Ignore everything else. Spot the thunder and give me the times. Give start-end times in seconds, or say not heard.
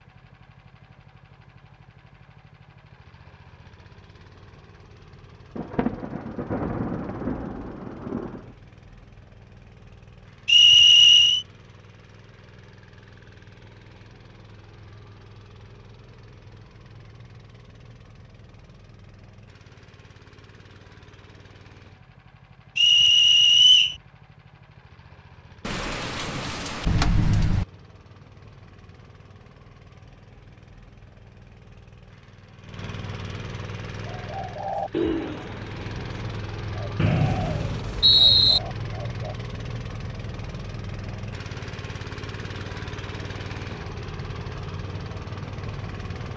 5.5-8.5, 25.6-27.6.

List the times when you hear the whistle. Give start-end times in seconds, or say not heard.
10.4-11.4, 22.8-23.9, 37.0-38.6.